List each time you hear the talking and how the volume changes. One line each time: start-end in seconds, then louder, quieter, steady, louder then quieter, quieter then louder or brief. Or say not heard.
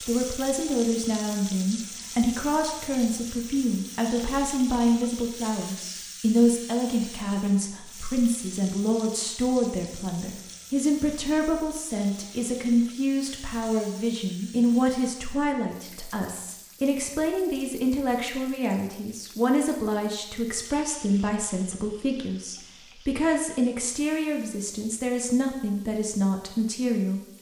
0.0-27.2 steady.